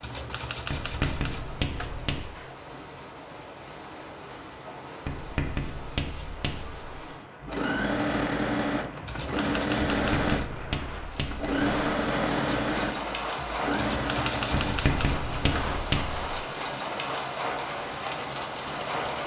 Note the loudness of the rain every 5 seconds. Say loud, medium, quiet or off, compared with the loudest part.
medium, medium, loud, loud.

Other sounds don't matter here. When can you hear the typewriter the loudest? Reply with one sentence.
The loudest moment of the typewriter is at 14 seconds.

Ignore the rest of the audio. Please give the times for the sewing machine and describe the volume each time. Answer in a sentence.
The sewing machine can be heard from 7.4 to 19.2 s, getting quieter.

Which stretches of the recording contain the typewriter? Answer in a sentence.
The typewriter can be heard from 0.0 to 2.0 s, from 9.1 to 10.7 s and from 13.8 to 15.8 s.